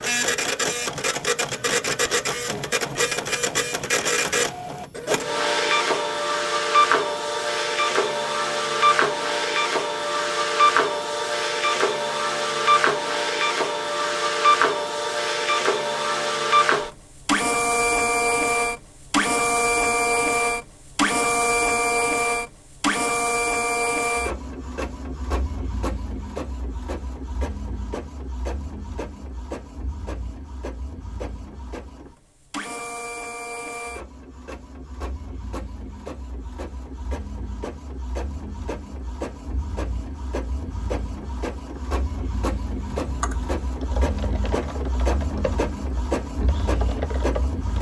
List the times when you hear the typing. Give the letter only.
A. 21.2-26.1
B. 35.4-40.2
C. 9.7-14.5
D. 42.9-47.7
D.